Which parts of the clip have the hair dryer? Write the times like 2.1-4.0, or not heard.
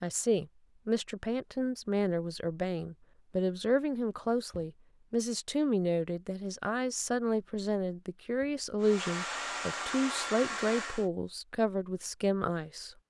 8.8-11.1.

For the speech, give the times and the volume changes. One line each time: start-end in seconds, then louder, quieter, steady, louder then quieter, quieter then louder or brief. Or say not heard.
0.0-12.9 steady.